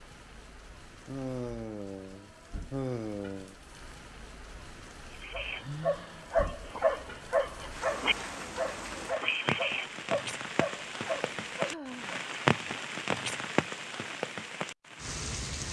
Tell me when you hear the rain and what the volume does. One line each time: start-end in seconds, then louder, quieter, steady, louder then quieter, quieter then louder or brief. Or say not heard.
0.0-15.6 louder.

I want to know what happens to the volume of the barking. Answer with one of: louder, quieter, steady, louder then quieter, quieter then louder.
quieter.